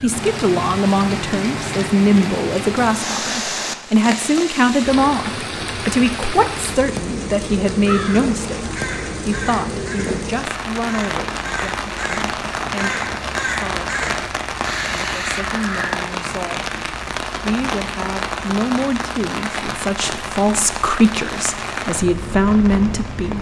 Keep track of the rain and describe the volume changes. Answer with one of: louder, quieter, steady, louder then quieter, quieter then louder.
steady.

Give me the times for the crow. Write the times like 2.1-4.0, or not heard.
7.8-15.9.